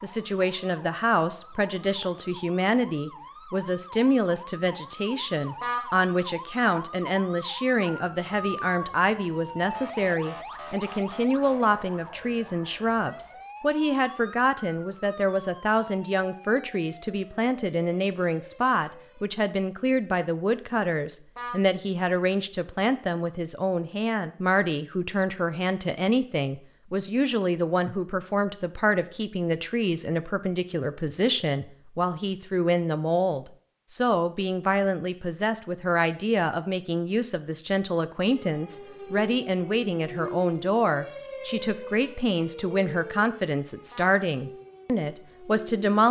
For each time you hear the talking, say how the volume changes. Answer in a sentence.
The talking can be heard from 0.0 to 46.0 s, at a steady volume.